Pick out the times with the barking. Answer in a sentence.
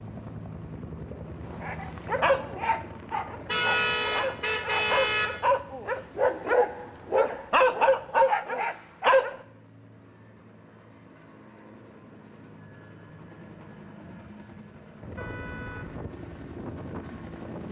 The barking can be heard from 1.6 to 9.3 s.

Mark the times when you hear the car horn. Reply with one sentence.
The car horn can be heard from 3.5 to 5.3 s and from 15.2 to 16.1 s.